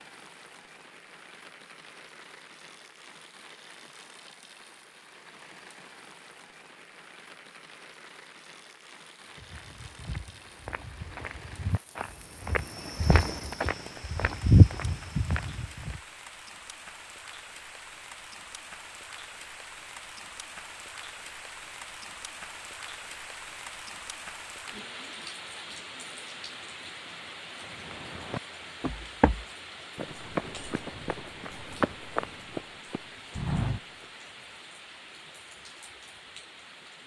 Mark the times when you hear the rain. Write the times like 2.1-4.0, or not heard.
0.0-37.0.